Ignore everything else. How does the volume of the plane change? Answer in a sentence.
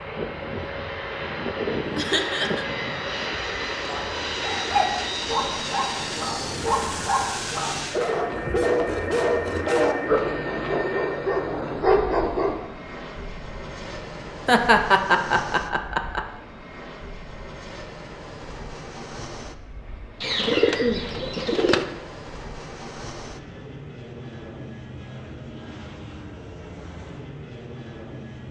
The loudness of the plane goes down.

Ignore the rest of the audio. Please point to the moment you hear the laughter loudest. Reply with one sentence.
The loudest moment of the laughter is at 15 seconds.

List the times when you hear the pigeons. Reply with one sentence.
The pigeons can be heard from 8.2 to 10.9 s and from 20.2 to 21.9 s.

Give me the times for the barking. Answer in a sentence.
The barking can be heard from 3.9 to 12.7 s.